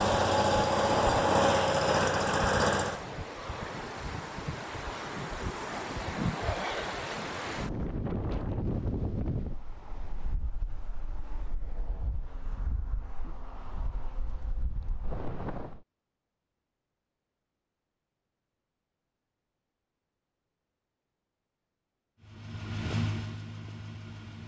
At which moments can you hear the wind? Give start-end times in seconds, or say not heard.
0.1-15.8.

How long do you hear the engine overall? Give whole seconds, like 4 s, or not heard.
5 s.